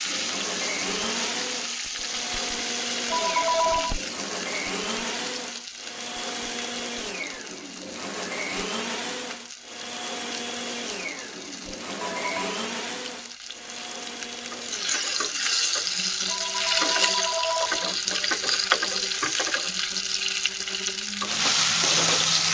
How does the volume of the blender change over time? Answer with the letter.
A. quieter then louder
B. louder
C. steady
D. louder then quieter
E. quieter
E.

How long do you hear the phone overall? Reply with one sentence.
You can hear the phone for 3 seconds altogether.